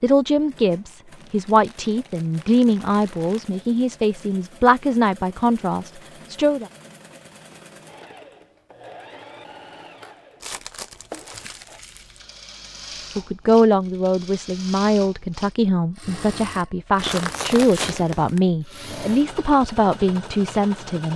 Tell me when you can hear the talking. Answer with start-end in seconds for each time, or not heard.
0.0-6.7, 13.2-21.1.